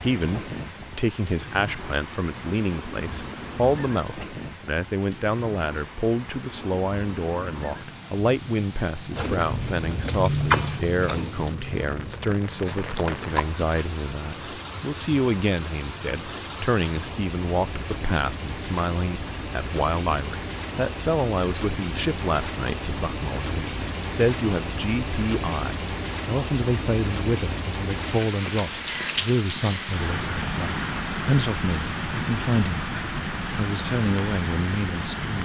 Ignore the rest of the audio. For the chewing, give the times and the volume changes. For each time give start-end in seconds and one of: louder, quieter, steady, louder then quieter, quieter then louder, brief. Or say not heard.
9.1-13.6 louder then quieter.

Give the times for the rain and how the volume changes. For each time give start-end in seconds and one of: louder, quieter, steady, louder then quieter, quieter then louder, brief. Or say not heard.
0.0-35.3 louder.